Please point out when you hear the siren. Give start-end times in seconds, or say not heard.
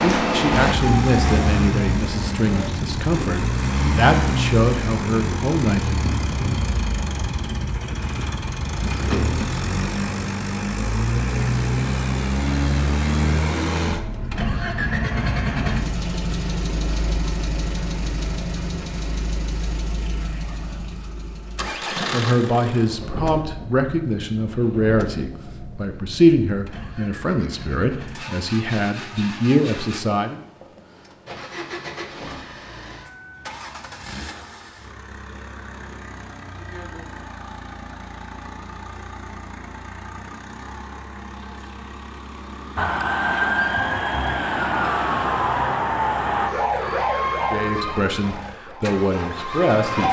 0.0-2.7, 42.8-50.0.